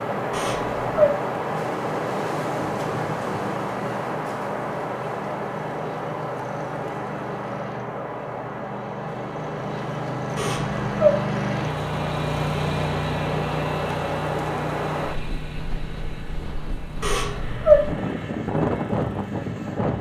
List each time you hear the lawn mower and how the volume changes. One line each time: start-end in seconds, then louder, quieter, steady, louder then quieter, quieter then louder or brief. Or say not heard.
0.0-19.9 louder then quieter.